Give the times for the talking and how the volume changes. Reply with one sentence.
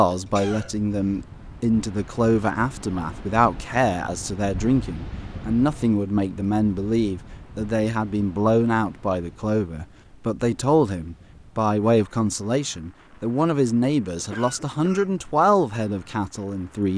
The talking can be heard from 0.0 to 16.9 s, at a steady volume.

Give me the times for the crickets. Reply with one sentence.
You can't hear the crickets here.